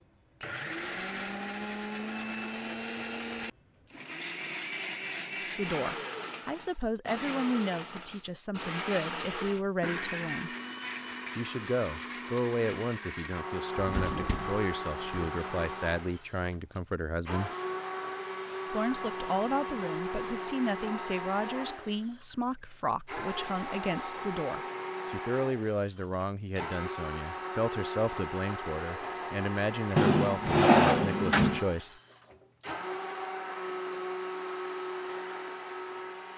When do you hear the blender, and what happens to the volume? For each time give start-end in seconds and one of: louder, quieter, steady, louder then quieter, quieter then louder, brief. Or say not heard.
0.0-36.3 steady.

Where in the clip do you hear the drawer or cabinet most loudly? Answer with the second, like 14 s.
31 s.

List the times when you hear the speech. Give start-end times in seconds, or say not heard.
5.3-10.5, 11.3-17.5, 18.7-31.9.